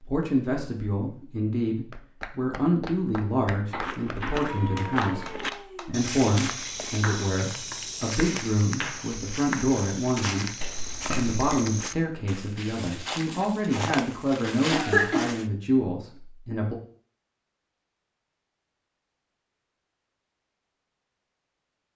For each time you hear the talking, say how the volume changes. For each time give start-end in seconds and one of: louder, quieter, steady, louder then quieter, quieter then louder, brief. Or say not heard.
0.0-16.8 steady.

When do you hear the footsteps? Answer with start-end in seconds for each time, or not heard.
3.6-15.5.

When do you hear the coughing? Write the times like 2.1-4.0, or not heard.
3.7-4.4, 10.8-11.7, 14.7-15.2.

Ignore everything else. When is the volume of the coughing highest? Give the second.
15 s.